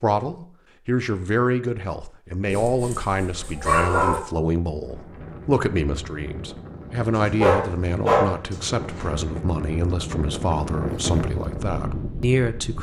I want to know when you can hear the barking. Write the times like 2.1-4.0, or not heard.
2.5-4.2, 7.3-9.1.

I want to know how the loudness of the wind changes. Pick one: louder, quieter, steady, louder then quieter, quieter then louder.
louder.